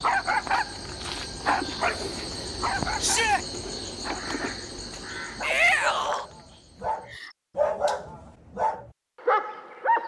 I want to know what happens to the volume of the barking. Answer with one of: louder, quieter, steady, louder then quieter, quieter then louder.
quieter then louder.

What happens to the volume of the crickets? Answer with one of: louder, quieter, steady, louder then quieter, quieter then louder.
quieter.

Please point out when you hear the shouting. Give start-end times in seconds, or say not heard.
3.0-3.5, 5.4-6.2.